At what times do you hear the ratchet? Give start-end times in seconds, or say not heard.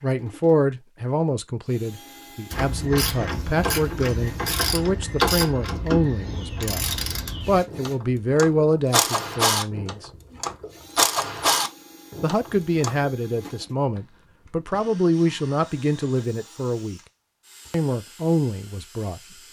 2.5-13.1.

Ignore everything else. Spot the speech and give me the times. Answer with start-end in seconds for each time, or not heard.
0.0-10.1, 12.2-17.0, 17.7-19.4.